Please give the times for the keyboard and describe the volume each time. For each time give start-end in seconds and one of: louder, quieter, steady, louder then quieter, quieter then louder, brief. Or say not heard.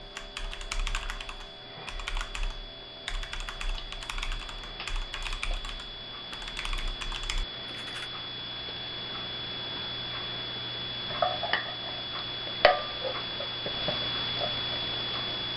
0.0-8.1 steady.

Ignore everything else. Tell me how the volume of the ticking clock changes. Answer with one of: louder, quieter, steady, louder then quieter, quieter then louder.
louder.